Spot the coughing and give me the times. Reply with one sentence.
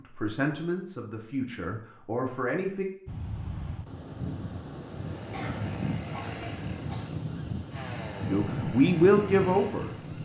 You can hear the coughing from 5.3 to 7.1 s.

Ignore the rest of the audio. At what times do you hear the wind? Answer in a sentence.
You can hear the wind from 3.0 to 10.2 s.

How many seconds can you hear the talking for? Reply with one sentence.
You can hear the talking for 5 seconds altogether.